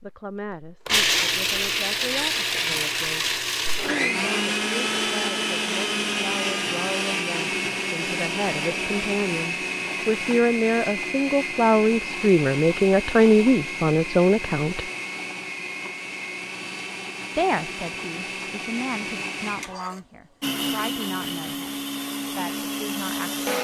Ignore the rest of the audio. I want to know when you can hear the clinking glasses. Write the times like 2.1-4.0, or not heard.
not heard.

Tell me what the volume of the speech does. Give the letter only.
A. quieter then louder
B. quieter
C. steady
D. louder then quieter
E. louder
D.